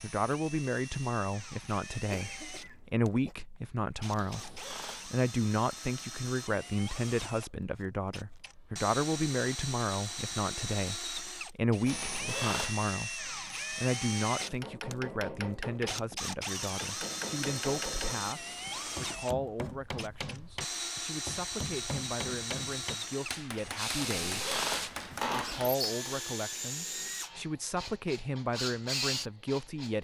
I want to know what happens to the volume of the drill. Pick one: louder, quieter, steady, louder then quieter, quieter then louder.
louder.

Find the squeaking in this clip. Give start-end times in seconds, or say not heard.
4.2-5.2, 11.8-12.8, 23.9-25.7.